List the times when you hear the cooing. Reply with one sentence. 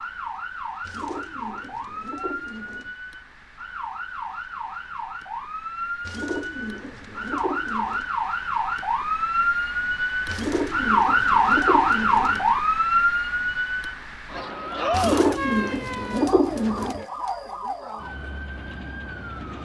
The cooing can be heard from 0.8 to 3.0 s, from 6.0 to 8.1 s, from 10.2 to 12.6 s and from 14.9 to 17.1 s.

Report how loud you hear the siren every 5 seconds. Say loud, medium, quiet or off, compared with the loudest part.
quiet, medium, loud, medium.